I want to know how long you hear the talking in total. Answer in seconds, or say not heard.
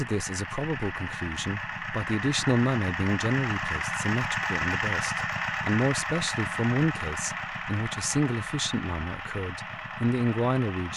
11 s.